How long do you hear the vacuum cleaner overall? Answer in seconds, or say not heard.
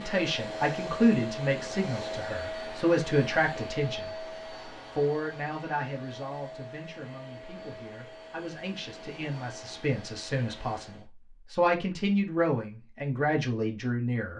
11 s.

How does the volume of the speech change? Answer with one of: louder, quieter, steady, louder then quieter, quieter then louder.
quieter then louder.